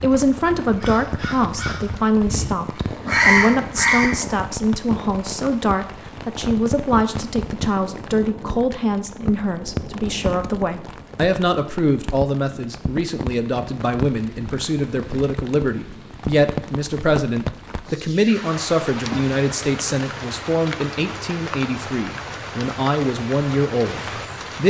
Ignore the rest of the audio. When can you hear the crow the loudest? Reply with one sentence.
The volume of the crow peaks at 3 seconds.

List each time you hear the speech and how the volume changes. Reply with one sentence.
You can hear the speech from 0.0 to 24.6 s, at a steady volume.